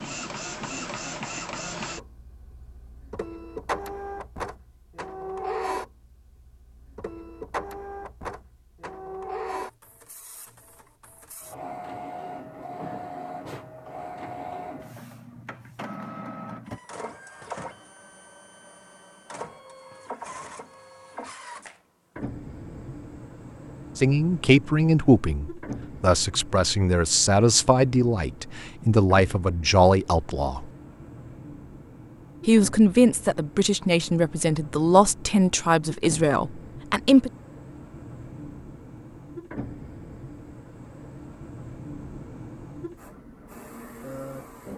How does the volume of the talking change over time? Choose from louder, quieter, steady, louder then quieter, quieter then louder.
steady.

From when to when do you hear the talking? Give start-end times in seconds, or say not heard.
23.9-30.6, 32.5-37.3.